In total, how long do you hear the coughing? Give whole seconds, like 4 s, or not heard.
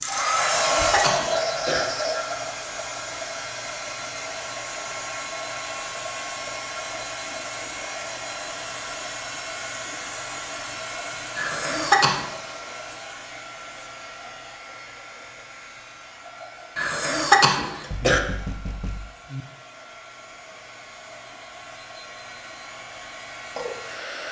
4 s.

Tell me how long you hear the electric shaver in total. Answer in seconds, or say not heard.
not heard.